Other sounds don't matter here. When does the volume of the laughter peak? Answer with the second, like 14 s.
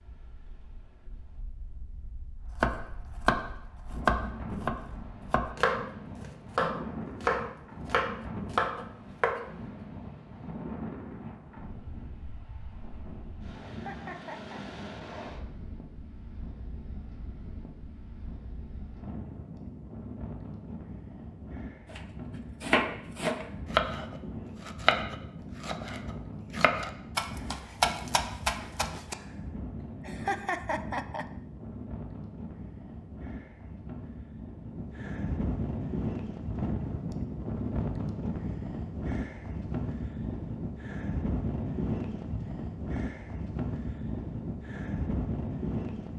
30 s.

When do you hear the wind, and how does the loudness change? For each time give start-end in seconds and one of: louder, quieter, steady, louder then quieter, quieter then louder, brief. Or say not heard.
0.0-46.1 louder.